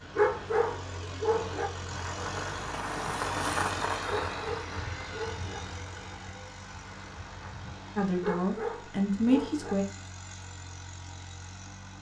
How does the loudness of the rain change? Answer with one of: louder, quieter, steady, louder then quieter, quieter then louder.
louder then quieter.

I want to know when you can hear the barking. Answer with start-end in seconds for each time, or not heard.
0.1-1.7, 4.3-5.6, 8.2-9.8.